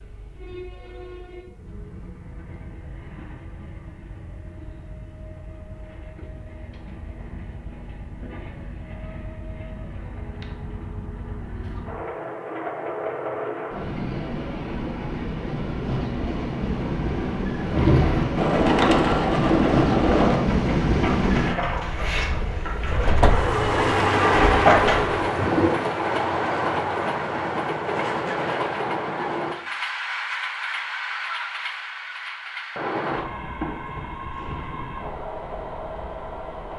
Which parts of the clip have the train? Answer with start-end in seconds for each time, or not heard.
0.0-36.7.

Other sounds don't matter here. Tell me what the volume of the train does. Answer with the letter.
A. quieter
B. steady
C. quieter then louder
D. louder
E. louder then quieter
E.